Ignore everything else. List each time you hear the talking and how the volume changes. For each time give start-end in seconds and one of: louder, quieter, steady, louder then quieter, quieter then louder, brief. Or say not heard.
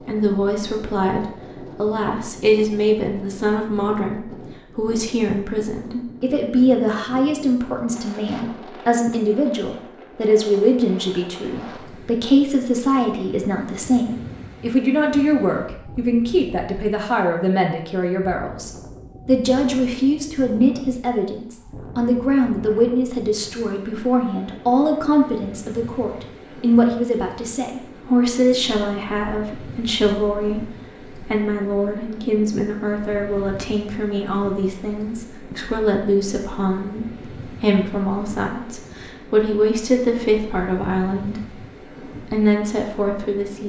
0.1-43.6 steady.